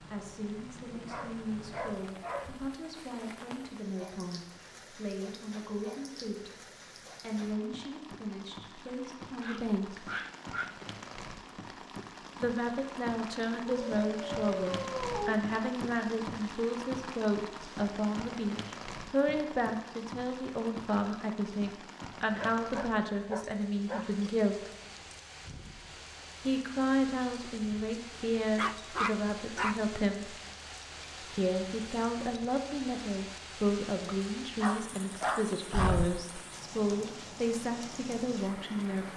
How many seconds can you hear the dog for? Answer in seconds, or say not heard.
10 s.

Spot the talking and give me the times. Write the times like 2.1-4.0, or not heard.
0.1-6.5, 7.2-10.1, 12.4-24.7, 26.4-30.4, 31.3-39.1.